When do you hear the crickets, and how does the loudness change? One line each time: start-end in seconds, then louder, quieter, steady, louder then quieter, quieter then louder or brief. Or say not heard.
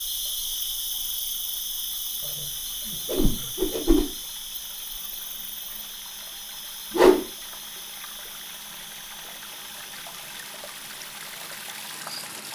0.0-12.5 quieter.